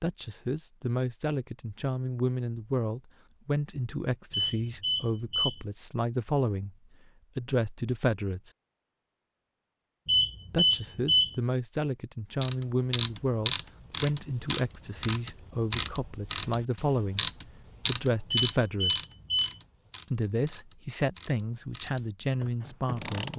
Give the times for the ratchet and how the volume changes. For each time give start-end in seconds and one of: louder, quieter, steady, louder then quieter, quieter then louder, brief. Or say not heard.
12.4-23.3 quieter.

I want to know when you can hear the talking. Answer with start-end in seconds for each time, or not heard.
0.0-6.8, 7.3-8.5, 10.5-17.2, 17.9-19.1, 20.1-23.3.